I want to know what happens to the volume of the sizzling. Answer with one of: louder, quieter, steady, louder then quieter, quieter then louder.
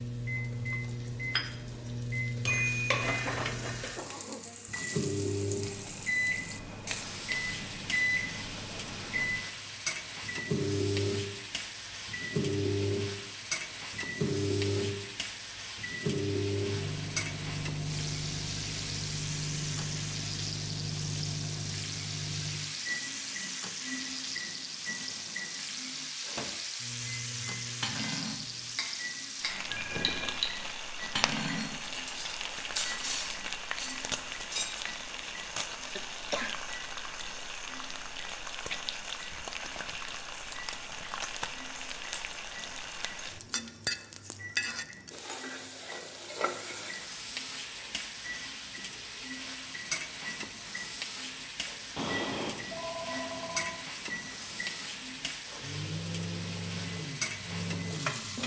steady.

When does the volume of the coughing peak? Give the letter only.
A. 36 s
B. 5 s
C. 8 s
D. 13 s
A.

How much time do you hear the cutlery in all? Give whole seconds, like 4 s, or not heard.
7 s.